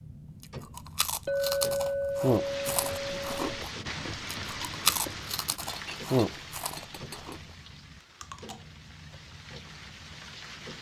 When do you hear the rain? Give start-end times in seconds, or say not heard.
2.1-10.7.